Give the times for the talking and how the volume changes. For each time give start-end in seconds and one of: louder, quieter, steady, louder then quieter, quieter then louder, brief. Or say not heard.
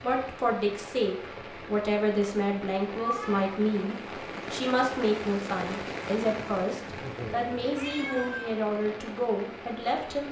0.0-10.2 steady.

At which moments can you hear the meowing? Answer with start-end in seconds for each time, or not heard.
3.0-3.5, 7.8-8.5.